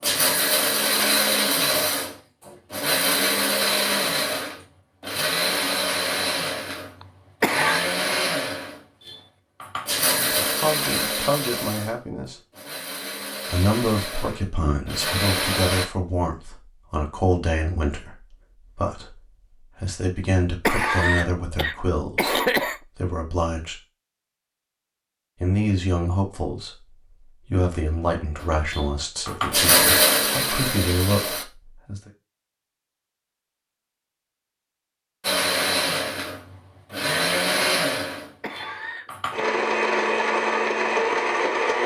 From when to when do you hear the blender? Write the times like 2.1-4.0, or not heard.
0.0-15.8, 28.4-31.4, 35.2-41.8.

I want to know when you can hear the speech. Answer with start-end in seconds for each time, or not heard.
10.2-12.3, 13.4-23.8, 25.4-32.1.